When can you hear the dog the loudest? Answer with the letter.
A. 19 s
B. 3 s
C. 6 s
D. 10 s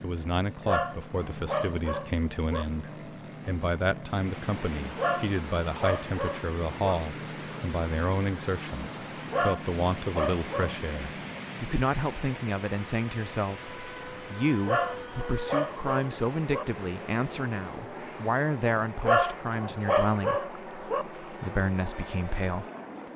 A.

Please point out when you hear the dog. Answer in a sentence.
The dog can be heard from 0.7 to 2.6 s, from 5.0 to 7.0 s, from 9.3 to 10.8 s, from 14.7 to 16.6 s and from 19.0 to 21.1 s.